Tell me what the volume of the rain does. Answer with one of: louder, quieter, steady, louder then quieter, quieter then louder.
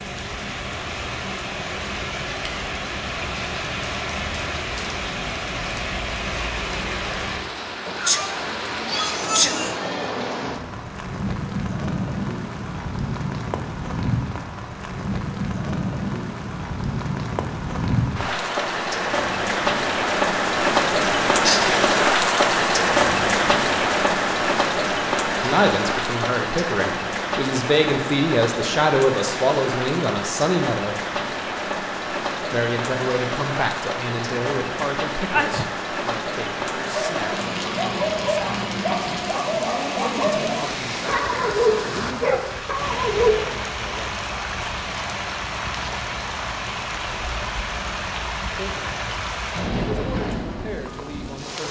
louder then quieter.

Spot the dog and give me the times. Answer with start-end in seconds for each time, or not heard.
36.9-43.5.